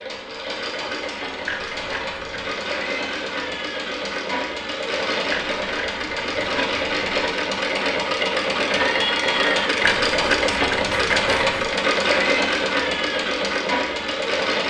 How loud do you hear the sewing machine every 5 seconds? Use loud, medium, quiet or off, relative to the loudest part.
medium, loud, loud.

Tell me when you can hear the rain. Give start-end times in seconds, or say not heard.
not heard.